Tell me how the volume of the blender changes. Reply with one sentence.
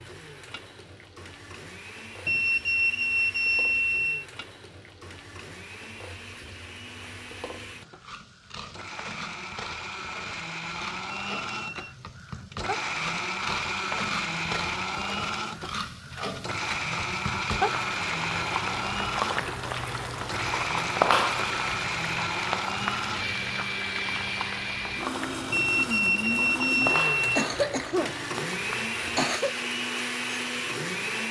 The loudness of the blender goes up.